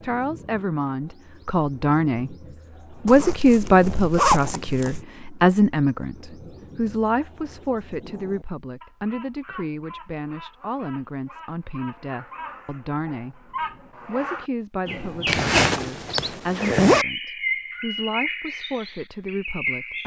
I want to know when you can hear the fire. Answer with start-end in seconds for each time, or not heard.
not heard.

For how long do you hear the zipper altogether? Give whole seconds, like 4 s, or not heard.
4 s.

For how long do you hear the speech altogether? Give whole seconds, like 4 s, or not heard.
19 s.